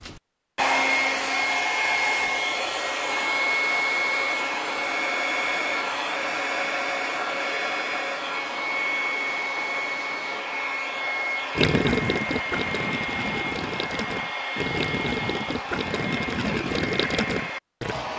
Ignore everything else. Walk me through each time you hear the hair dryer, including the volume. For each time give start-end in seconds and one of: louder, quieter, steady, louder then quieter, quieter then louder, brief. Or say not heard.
0.0-18.1 quieter.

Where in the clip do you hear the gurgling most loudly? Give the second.
12 s.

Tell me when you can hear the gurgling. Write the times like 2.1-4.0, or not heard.
11.6-18.1.